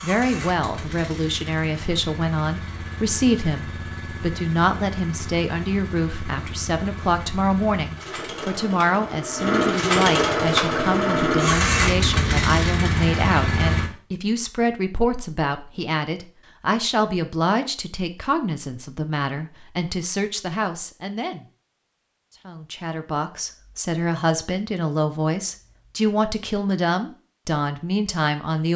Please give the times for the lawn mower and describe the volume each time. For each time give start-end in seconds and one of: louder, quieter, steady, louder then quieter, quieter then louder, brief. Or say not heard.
0.0-13.9 louder.